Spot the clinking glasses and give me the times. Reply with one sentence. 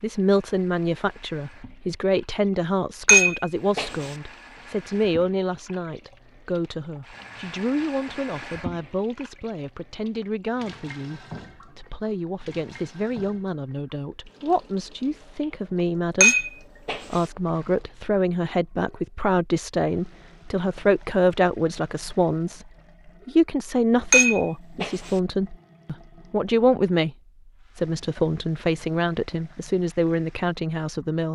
The clinking glasses can be heard from 3.0 to 3.9 s, from 16.2 to 17.0 s and from 24.1 to 25.1 s.